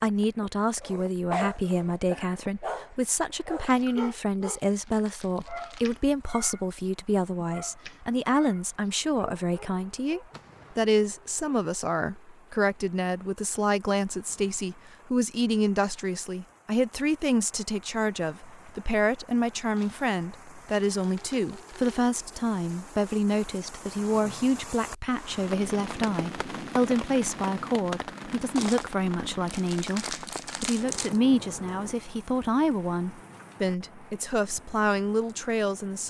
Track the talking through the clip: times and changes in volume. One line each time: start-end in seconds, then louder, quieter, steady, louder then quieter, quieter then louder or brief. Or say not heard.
0.0-36.0 steady.